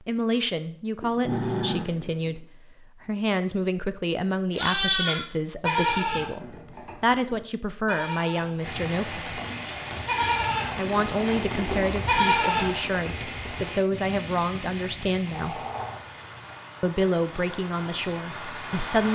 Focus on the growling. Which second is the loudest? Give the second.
1 s.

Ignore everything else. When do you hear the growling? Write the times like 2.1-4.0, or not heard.
1.0-2.5, 15.3-16.2.